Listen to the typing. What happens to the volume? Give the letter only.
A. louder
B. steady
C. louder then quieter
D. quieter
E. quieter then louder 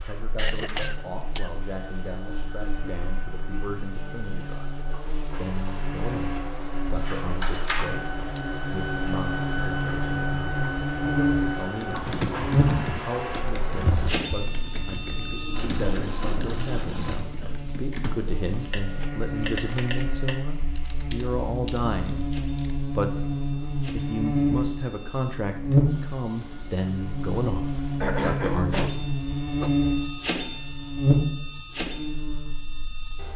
D.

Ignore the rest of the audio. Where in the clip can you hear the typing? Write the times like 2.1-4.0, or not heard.
11.8-22.9.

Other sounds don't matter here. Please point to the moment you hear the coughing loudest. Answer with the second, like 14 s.
28 s.